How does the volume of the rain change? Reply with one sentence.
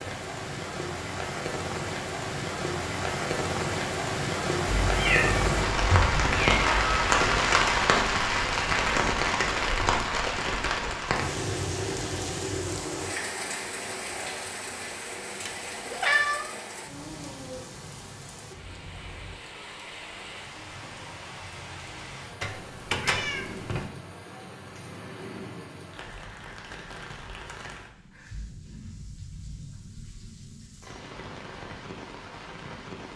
The volume of the rain goes down.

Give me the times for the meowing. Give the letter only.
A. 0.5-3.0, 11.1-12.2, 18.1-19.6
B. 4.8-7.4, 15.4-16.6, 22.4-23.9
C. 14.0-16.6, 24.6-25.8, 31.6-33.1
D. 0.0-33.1
B.